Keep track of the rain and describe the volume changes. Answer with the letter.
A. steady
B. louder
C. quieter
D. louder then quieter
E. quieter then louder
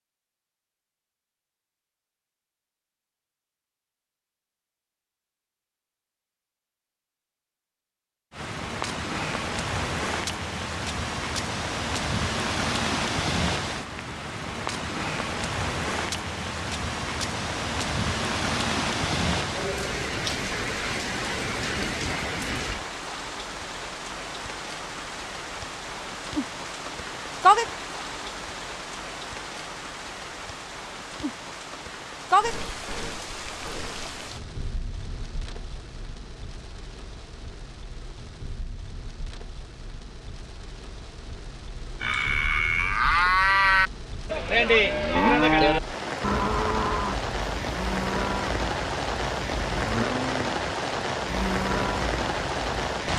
E.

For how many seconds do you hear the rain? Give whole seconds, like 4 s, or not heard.
45 s.